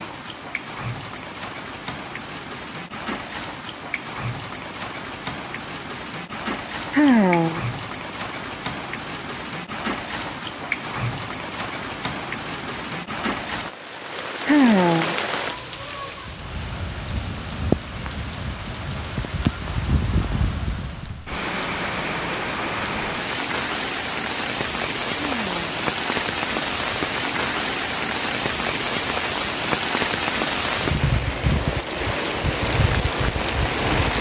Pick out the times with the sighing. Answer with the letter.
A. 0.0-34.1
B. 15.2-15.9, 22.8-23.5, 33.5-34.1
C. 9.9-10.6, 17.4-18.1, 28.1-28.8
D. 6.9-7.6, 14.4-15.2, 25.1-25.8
D.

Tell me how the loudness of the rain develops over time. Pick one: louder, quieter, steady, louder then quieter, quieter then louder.
louder.